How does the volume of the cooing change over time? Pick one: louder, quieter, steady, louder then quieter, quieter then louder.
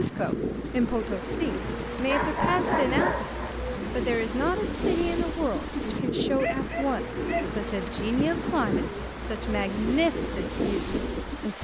steady.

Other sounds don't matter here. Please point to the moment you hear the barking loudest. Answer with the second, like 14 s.
3 s.